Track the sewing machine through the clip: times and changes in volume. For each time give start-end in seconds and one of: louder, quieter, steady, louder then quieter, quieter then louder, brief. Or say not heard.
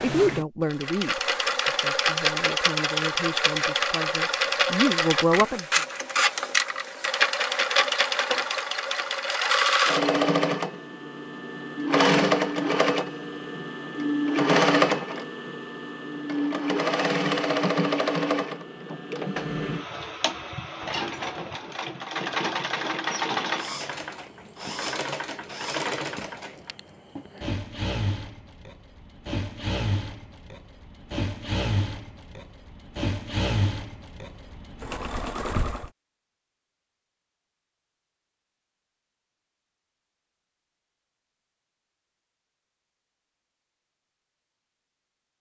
0.0-35.9 quieter.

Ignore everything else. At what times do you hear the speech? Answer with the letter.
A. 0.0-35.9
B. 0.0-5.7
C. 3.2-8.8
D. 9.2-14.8
B.